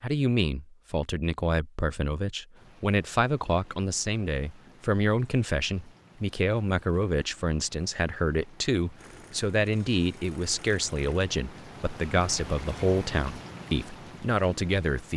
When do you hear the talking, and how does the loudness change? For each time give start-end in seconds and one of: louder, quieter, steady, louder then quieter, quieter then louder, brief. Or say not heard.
0.0-15.1 steady.